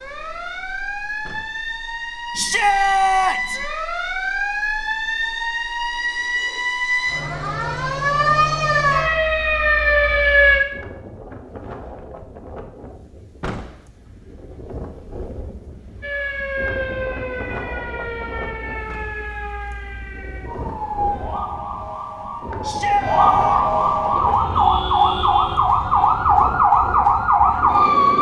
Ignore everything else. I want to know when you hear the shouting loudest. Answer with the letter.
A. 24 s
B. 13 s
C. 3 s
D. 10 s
C.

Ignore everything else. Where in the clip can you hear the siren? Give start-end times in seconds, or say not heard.
0.0-10.6, 16.0-28.1.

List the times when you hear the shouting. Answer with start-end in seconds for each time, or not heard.
2.4-3.6, 22.6-23.6.